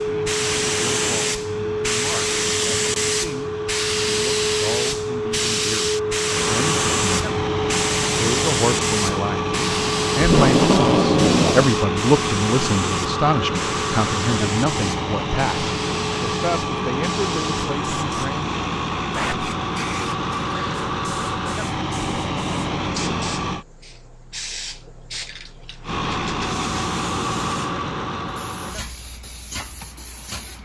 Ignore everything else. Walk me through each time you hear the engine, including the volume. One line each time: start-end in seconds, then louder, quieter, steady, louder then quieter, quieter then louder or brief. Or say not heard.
0.0-23.6 louder
25.8-30.6 quieter.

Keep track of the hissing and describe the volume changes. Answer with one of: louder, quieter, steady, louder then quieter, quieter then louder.
quieter.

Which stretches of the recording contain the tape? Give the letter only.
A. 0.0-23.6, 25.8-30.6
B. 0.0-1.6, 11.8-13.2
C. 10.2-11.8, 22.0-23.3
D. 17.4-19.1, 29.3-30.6
C.